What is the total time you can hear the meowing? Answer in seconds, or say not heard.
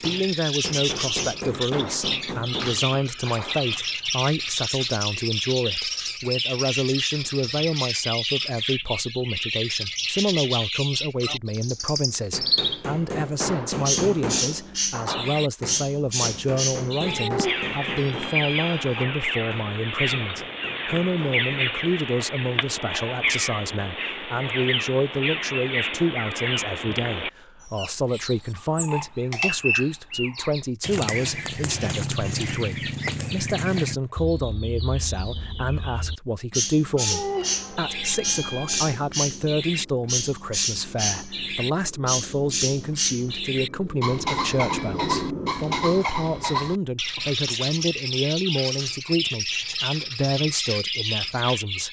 4 s.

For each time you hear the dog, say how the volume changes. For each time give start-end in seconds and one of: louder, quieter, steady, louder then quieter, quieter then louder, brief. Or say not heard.
not heard.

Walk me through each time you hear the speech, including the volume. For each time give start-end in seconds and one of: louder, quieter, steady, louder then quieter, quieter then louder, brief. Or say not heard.
0.0-51.8 steady.